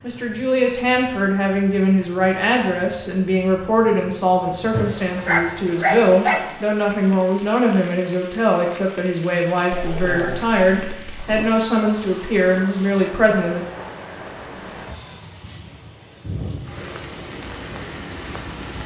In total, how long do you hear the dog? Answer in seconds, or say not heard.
4 s.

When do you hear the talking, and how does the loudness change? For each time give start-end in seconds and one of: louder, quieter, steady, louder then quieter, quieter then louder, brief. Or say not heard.
0.0-13.7 steady.